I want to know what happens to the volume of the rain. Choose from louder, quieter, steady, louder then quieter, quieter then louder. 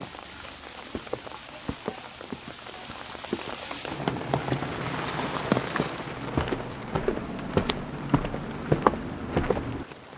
louder then quieter.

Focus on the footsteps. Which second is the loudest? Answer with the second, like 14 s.
9 s.